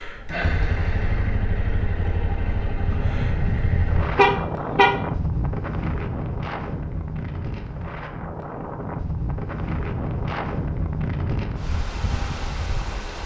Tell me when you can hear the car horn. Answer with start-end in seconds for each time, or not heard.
4.2-5.0.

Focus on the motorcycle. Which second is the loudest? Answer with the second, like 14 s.
1 s.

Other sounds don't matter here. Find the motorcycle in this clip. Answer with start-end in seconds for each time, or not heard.
0.0-4.2.